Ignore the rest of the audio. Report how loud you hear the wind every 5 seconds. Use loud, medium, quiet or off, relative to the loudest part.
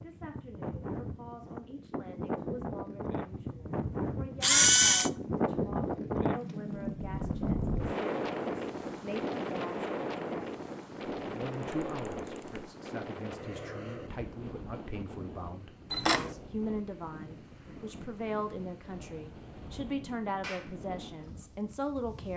medium, loud, medium, quiet, quiet.